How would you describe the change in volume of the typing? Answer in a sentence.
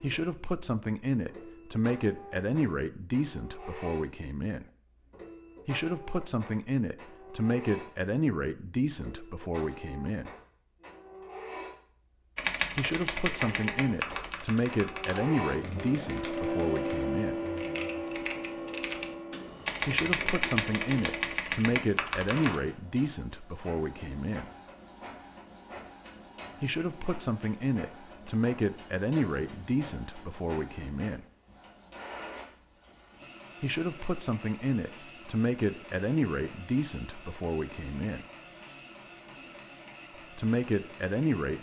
The loudness of the typing goes down, then up.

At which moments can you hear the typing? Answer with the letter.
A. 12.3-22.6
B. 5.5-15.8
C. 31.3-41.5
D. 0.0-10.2
A.